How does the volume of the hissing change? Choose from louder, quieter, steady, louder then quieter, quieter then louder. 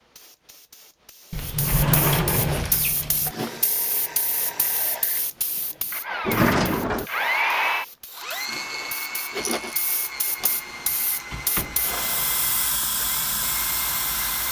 quieter then louder.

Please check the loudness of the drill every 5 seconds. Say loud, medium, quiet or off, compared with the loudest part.
medium, loud, medium.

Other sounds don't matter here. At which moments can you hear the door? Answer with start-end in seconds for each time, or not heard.
1.3-3.4, 6.2-7.1, 10.4-12.0.